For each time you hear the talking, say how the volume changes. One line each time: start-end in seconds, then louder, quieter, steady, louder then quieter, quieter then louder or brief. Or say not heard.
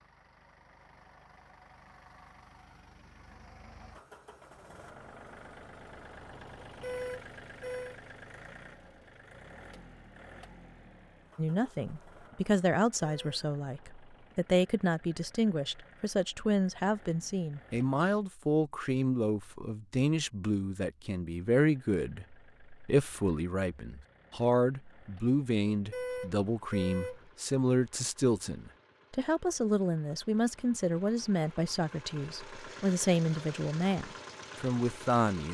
11.3-35.5 steady.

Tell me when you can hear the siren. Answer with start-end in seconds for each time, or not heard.
not heard.